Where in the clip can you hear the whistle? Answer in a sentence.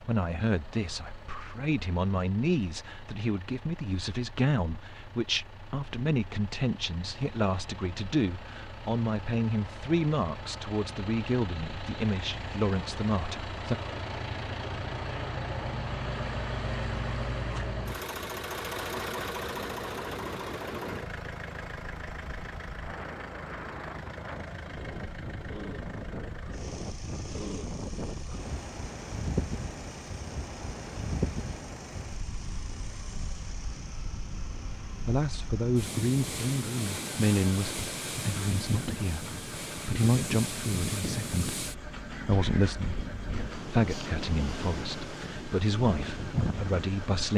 The whistle can't be heard in this clip.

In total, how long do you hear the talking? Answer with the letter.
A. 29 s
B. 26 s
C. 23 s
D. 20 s
B.